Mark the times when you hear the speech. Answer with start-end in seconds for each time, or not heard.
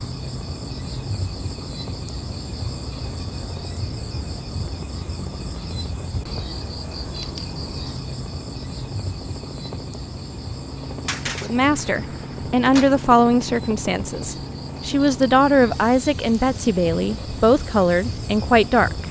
11.4-19.0.